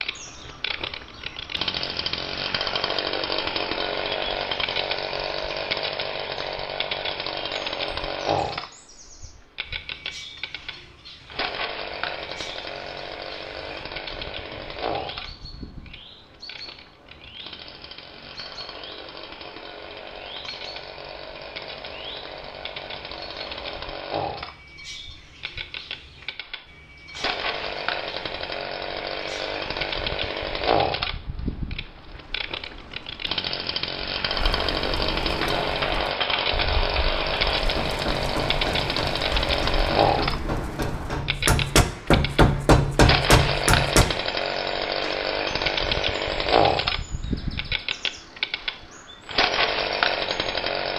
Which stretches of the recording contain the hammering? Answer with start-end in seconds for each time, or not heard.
35.2-44.0.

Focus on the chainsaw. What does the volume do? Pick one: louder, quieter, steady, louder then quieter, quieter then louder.
quieter then louder.